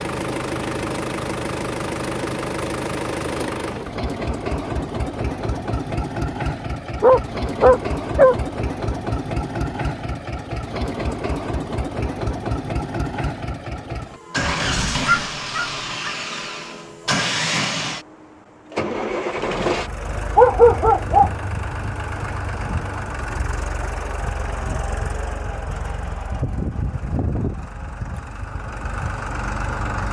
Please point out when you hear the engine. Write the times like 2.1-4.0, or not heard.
0.0-30.0.